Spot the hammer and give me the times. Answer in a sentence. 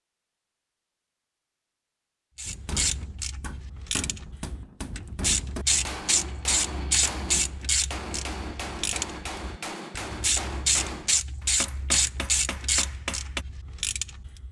You can hear the hammer from 2.5 to 13.4 s.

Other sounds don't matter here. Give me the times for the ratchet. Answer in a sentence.
The ratchet can be heard from 2.4 to 14.4 s.